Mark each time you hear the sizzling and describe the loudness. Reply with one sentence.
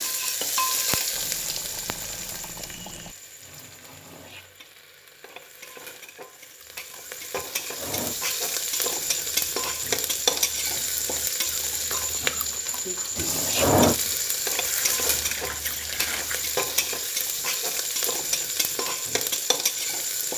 You can hear the sizzling from 0.0 to 20.3 s, getting quieter then louder.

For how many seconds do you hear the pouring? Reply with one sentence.
You can hear the pouring for 4 seconds altogether.